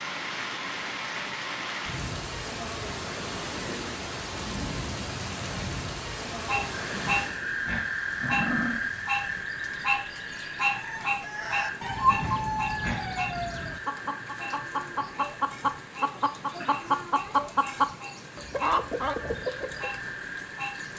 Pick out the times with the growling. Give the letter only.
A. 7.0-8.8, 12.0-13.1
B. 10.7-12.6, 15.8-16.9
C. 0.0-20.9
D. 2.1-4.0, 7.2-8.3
A.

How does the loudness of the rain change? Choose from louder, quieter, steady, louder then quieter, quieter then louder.
quieter.